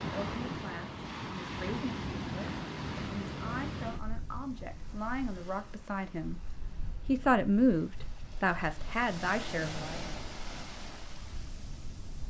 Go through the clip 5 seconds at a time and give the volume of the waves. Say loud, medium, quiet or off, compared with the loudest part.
loud, medium, medium.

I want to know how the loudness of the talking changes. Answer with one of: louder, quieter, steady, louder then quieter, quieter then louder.
louder then quieter.